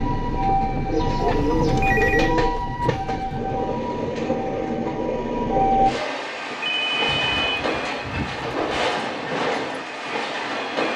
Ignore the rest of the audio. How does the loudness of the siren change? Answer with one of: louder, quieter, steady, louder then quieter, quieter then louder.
quieter.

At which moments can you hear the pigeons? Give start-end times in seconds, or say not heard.
0.9-2.6, 7.0-8.7.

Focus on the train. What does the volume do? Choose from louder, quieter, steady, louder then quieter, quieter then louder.
steady.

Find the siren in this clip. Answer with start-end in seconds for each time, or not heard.
0.0-6.0.